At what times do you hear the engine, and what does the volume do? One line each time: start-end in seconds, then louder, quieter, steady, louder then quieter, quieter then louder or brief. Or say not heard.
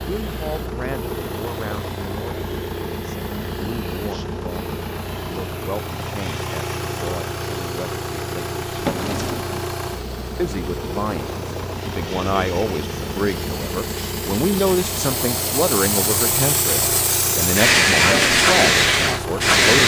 0.0-19.7 steady.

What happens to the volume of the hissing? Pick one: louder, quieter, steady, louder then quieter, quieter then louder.
louder.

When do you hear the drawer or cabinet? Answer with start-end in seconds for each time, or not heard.
8.7-9.7.